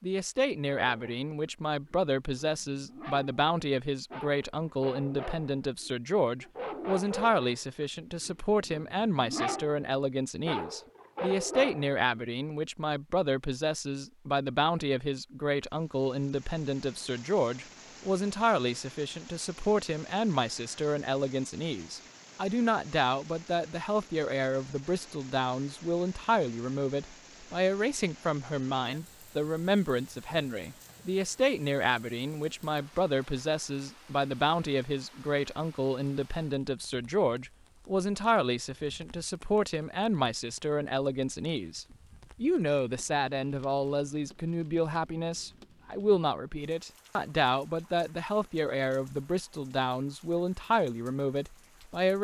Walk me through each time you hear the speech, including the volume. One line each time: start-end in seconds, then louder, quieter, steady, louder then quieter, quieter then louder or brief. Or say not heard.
0.0-52.1 steady.